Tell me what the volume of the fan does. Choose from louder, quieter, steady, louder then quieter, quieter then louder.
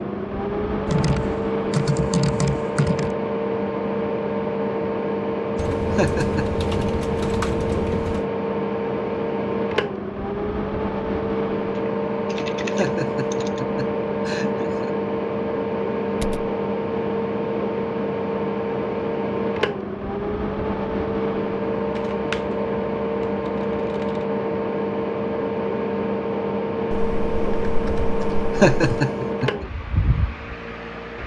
steady.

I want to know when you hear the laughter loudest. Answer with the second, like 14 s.
29 s.